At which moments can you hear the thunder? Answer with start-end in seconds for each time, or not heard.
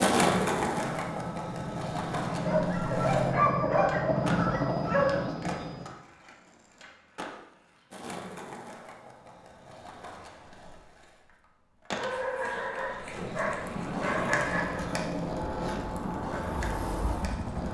not heard.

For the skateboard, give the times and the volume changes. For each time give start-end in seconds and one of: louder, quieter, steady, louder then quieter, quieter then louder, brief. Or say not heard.
0.0-17.6 quieter then louder.